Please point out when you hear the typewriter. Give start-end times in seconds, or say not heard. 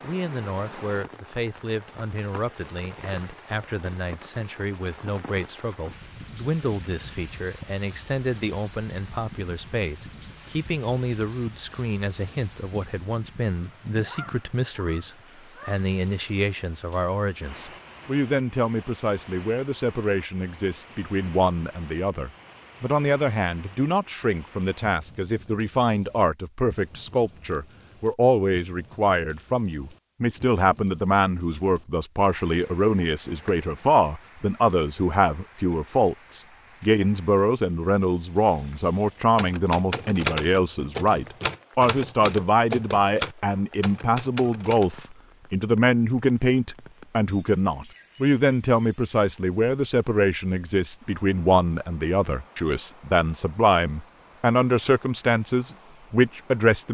39.4-44.9.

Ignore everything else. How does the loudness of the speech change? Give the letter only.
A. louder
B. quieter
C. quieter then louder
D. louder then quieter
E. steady
A.